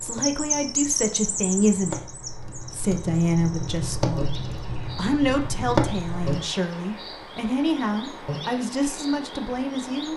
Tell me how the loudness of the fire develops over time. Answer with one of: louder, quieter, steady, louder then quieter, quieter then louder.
louder.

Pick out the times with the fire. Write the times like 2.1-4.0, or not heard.
0.0-6.5.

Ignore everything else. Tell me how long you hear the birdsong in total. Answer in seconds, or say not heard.
10 s.